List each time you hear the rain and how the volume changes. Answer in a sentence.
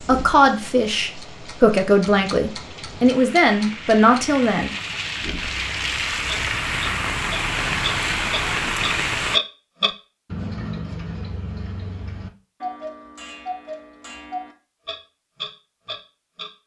The rain can be heard from 0.0 to 9.4 s, getting louder.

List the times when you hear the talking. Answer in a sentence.
You can hear the talking from 0.1 to 4.7 s.